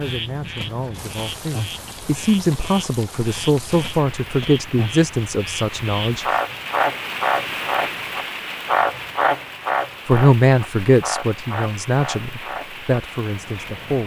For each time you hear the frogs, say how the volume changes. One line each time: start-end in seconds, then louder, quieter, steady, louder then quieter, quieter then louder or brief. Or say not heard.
0.0-14.0 louder then quieter.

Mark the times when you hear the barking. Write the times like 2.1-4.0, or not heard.
not heard.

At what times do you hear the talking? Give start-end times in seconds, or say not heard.
0.0-6.4, 10.1-14.0.